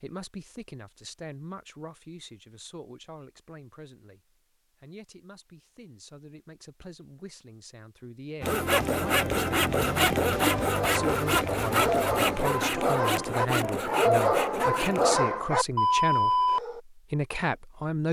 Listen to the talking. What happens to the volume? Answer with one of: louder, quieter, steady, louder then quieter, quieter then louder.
quieter then louder.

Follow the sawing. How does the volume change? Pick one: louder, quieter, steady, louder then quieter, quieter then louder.
quieter.